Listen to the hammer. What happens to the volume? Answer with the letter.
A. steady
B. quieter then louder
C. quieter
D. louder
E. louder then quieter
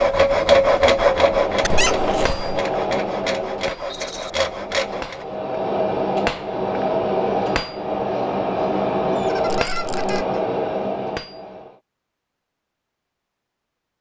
B.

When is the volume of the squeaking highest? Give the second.
2 s.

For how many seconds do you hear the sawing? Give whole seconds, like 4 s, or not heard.
5 s.